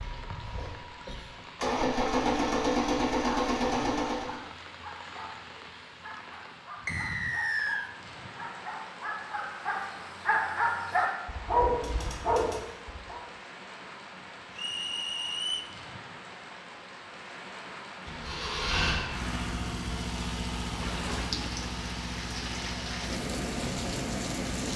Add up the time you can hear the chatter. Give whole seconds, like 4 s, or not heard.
not heard.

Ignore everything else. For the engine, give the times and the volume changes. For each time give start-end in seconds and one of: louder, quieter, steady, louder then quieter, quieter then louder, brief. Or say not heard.
0.0-4.4 louder
18.1-24.7 quieter.